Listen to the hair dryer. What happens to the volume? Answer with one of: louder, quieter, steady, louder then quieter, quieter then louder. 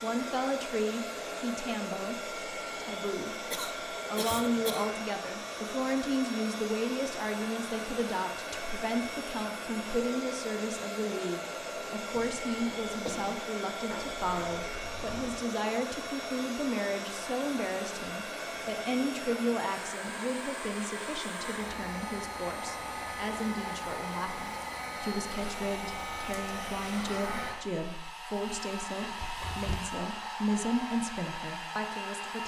steady.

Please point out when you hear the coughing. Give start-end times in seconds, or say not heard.
3.5-4.9, 12.2-13.4, 29.0-29.8.